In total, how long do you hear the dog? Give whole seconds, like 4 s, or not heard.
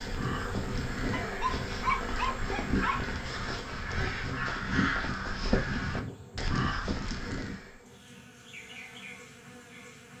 2 s.